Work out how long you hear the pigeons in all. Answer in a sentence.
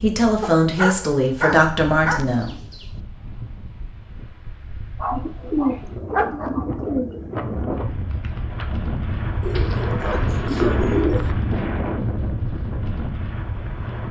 The pigeons can be heard for 5 seconds in total.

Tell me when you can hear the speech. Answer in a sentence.
The speech can be heard from 0.0 to 2.5 s.